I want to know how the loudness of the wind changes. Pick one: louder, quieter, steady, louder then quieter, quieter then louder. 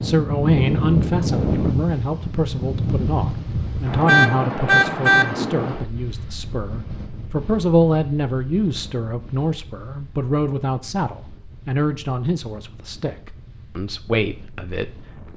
quieter.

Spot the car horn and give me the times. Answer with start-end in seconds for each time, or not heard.
4.0-5.2.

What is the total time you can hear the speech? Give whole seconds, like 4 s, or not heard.
15 s.